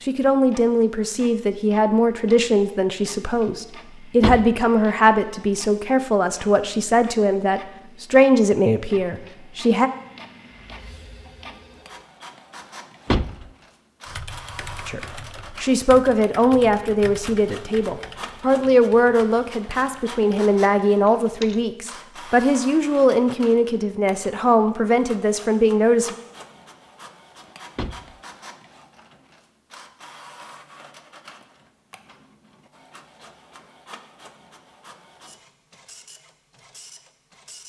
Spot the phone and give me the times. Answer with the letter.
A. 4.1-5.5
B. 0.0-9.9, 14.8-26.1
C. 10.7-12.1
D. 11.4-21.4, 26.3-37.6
C.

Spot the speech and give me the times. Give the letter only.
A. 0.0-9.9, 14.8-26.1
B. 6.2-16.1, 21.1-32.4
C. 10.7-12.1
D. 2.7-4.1
A.